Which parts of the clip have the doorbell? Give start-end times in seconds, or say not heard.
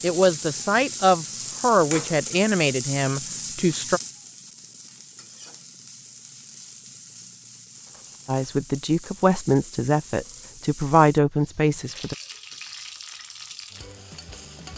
not heard.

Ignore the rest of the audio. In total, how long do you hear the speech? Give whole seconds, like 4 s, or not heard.
8 s.